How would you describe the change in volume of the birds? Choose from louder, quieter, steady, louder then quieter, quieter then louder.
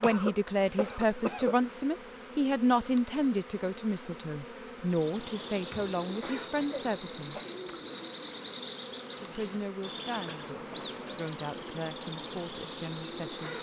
steady.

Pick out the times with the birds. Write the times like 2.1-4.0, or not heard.
4.8-13.5.